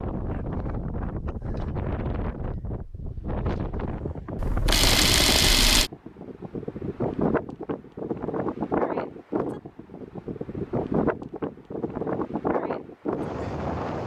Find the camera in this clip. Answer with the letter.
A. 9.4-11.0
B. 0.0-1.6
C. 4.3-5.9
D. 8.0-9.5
C.